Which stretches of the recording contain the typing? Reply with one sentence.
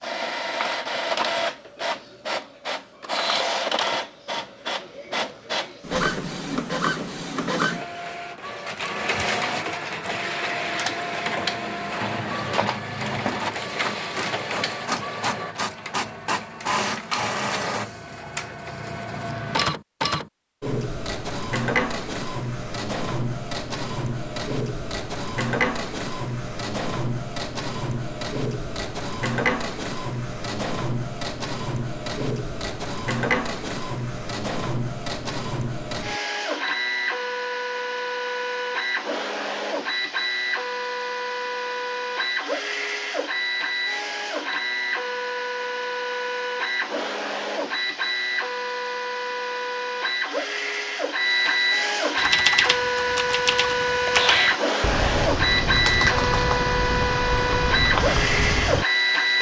You can hear the typing from 52.1 to 58.9 s.